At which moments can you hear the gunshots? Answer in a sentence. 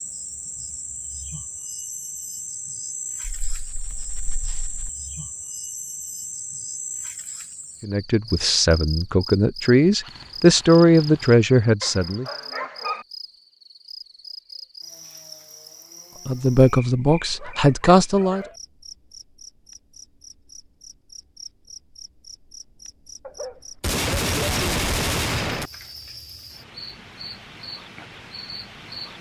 You can hear the gunshots from 9.8 to 11.4 s and from 23.8 to 25.7 s.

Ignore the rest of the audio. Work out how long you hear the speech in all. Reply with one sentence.
The speech can be heard for 7 seconds in total.